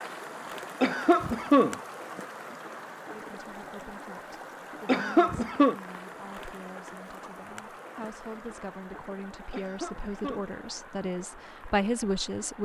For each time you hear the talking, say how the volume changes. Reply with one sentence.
You can hear the talking from 3.1 to 12.6 s, getting louder.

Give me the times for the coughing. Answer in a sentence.
The coughing can be heard from 0.8 to 1.8 s, from 4.8 to 5.8 s and from 9.5 to 10.5 s.